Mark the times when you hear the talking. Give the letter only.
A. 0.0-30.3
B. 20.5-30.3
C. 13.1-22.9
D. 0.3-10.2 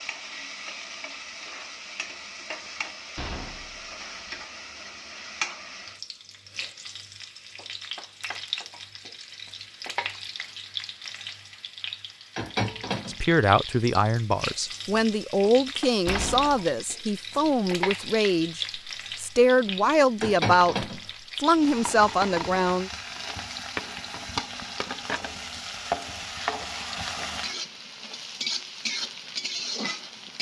C.